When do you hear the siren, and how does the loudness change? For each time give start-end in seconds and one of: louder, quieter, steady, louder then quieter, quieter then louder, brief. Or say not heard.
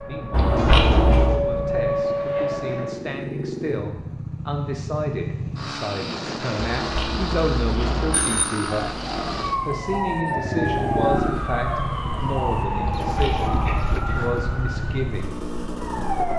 0.0-3.0 brief
9.2-16.3 quieter.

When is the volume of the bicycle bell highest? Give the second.
1 s.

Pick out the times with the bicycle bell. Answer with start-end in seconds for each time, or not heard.
0.3-1.4, 6.7-8.4, 12.8-13.9.